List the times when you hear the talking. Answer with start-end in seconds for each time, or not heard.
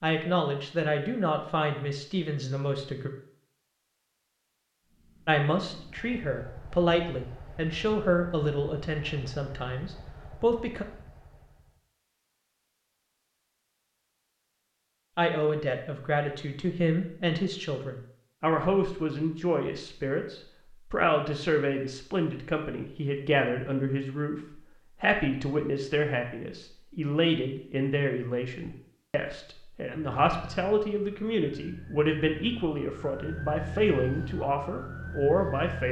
0.0-3.1, 5.2-10.8, 15.2-35.8.